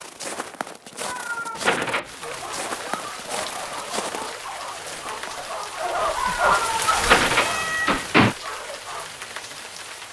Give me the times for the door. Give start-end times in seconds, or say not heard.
1.6-2.1, 7.0-8.3.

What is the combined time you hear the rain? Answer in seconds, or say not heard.
8 s.